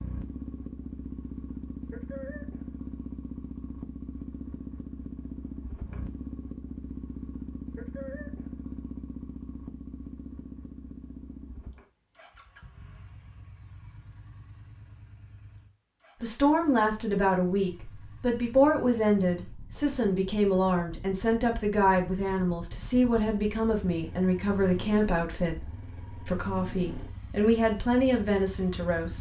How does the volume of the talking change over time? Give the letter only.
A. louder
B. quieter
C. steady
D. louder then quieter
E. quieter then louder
C.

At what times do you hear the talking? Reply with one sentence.
You can hear the talking from 16.2 to 29.1 s.